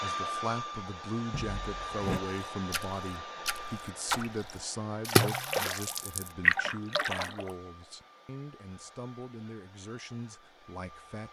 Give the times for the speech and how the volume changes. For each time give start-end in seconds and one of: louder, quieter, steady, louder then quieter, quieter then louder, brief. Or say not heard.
0.0-11.2 quieter.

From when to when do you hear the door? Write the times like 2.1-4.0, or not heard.
1.3-2.2.